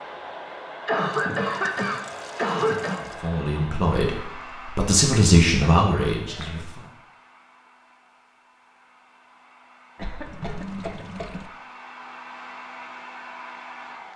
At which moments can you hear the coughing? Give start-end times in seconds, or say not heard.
0.8-3.0, 5.6-6.6, 9.9-11.5.